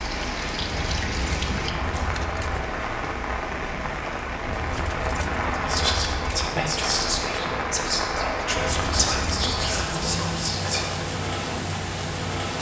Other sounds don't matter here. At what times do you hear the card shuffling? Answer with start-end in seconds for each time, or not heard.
not heard.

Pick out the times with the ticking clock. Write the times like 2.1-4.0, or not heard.
not heard.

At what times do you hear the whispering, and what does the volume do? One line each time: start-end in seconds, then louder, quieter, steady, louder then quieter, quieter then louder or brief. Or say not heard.
5.5-11.1 steady.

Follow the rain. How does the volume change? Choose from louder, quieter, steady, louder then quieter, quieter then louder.
steady.